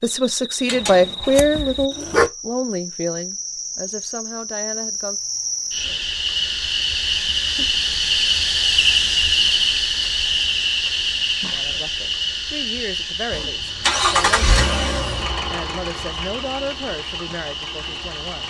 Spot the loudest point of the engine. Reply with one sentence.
The loudest moment of the engine is at 14 seconds.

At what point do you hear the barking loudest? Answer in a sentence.
The loudest moment of the barking is at 2 seconds.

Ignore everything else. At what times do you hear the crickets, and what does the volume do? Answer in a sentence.
You can hear the crickets from 0.0 to 18.4 s, getting louder then quieter.